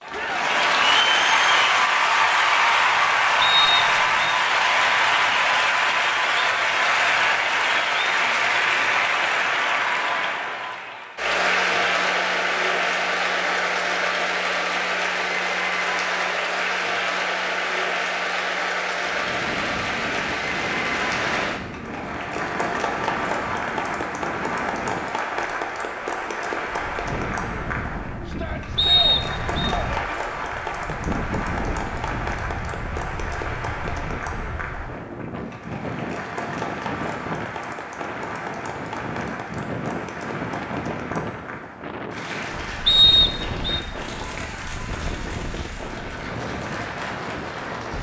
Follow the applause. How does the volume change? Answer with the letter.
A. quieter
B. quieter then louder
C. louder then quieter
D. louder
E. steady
A.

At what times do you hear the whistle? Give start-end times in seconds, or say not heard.
3.4-4.3, 28.8-29.6, 42.9-43.8.